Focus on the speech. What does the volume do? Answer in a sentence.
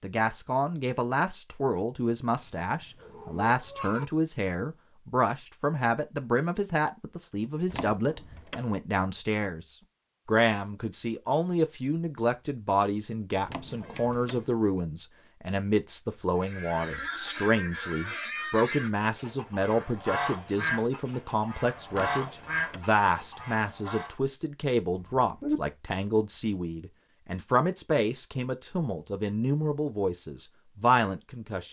The loudness of the speech stays about the same.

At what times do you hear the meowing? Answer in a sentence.
The meowing can be heard from 2.4 to 4.0 s, from 13.7 to 14.6 s and from 25.1 to 25.6 s.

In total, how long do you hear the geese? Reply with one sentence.
You can hear the geese for 8 seconds altogether.